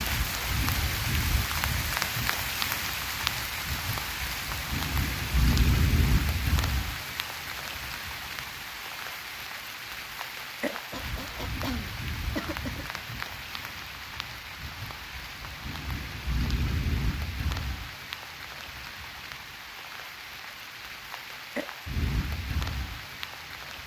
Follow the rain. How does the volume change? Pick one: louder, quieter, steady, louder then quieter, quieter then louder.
quieter.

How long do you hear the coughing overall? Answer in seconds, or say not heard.
2 s.